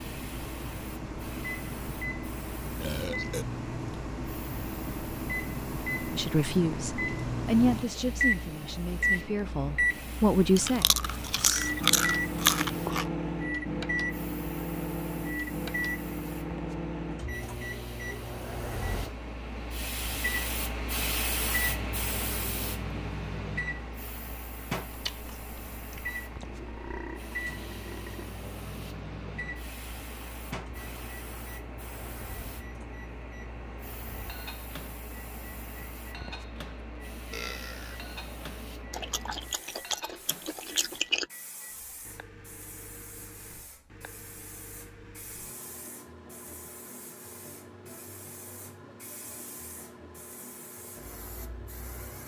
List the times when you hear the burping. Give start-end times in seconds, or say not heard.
2.8-3.5, 26.4-28.3, 37.3-38.0.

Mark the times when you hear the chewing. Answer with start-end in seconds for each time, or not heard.
10.6-13.1, 24.9-26.4, 38.9-41.2.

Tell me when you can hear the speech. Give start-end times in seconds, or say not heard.
6.1-10.8.